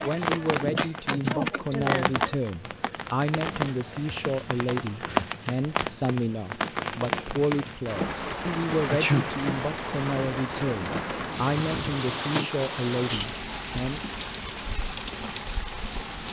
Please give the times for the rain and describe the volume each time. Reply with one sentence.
The rain can be heard from 0.0 to 16.2 s, at a steady volume.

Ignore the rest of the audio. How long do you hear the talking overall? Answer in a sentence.
You can hear the talking for 14 seconds altogether.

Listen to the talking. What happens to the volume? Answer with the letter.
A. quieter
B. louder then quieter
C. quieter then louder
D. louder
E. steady
E.